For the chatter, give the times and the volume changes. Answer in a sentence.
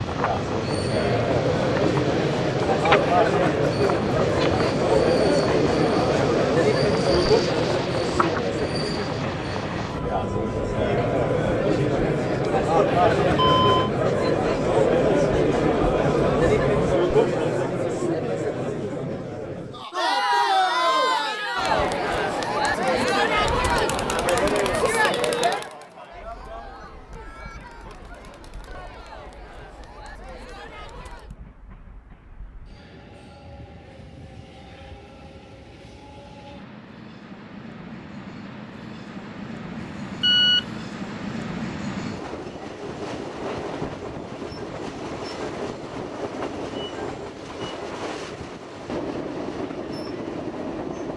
The chatter can be heard from 0.0 to 31.4 s, getting quieter.